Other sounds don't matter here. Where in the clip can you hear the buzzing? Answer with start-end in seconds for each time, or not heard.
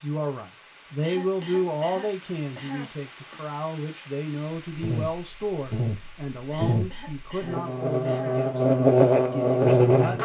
4.7-10.2.